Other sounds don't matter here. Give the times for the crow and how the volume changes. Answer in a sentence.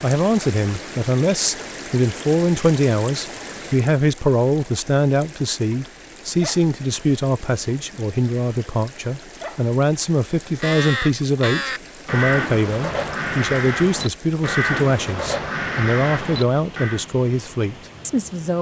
You can hear the crow from 10.6 to 17.1 s, at a steady volume.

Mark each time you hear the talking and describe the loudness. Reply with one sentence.
You can hear the talking from 0.0 to 18.5 s, at a steady volume.